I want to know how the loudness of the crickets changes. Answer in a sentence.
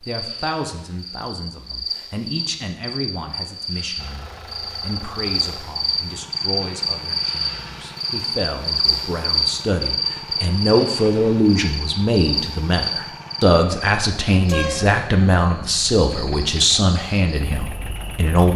The volume of the crickets goes up, then down.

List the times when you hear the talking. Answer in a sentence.
You can hear the talking from 0.0 to 18.5 s.